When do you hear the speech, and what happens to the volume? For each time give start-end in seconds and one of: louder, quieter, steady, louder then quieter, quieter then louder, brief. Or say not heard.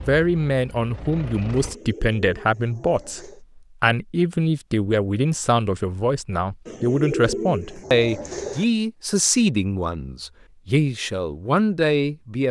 0.1-12.4 steady.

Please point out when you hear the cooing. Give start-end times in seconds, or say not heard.
1.6-3.4, 6.7-8.7.